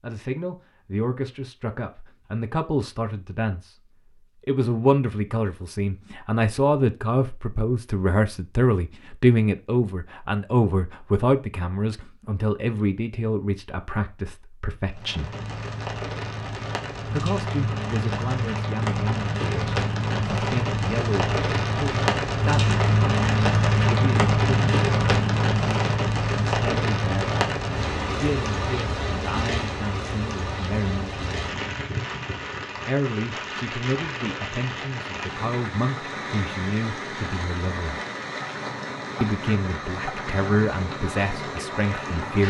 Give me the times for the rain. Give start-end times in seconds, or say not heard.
14.9-42.4.